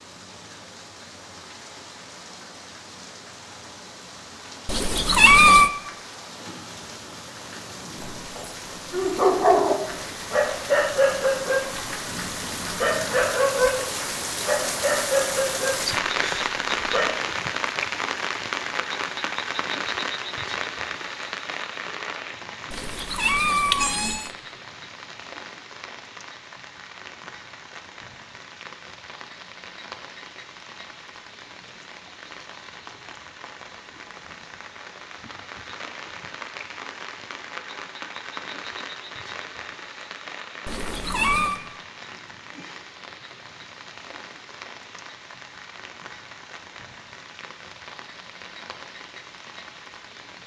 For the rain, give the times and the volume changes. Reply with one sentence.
The rain can be heard from 0.0 to 50.4 s, getting louder then quieter.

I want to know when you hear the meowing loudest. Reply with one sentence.
The volume of the meowing peaks at 5 seconds.